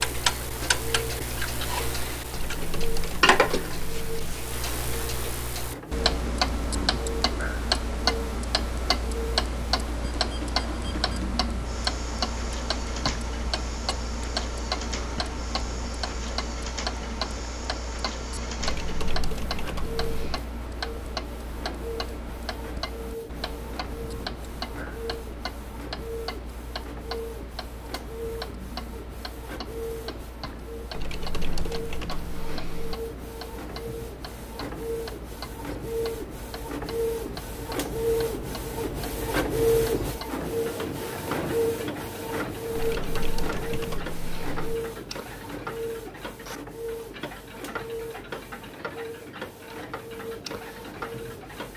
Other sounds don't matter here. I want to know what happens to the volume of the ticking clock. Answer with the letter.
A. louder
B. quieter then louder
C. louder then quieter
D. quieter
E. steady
D.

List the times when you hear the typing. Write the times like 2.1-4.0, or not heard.
2.3-4.3, 18.6-20.4, 30.9-33.0, 42.8-44.8.